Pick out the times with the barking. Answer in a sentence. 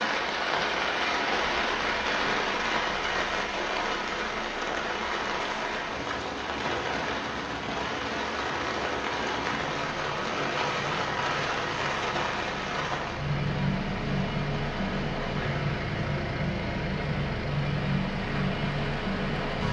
The barking can't be heard in this clip.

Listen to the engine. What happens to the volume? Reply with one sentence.
The volume of the engine goes up.